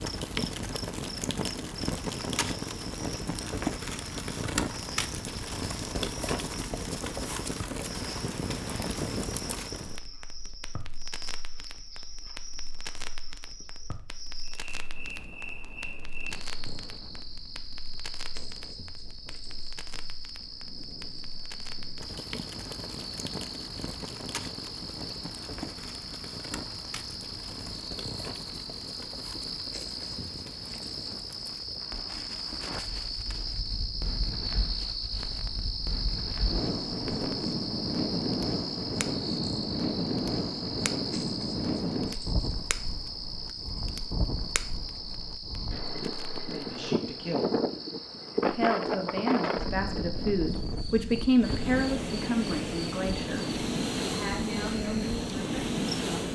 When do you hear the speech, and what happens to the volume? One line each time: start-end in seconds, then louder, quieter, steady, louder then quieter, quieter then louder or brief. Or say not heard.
46.5-47.6 brief
48.4-56.2 louder then quieter.